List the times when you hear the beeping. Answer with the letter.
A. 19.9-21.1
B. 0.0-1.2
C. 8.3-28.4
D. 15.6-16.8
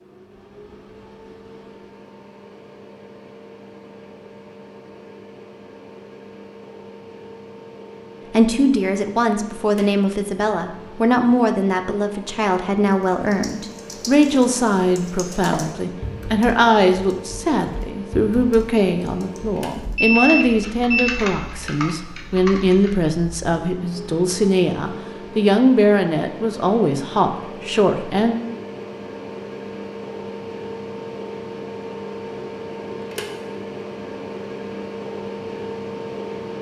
A.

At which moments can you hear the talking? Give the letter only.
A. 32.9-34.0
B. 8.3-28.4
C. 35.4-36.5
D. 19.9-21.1
B.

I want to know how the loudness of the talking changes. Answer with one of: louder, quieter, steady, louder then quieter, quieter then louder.
steady.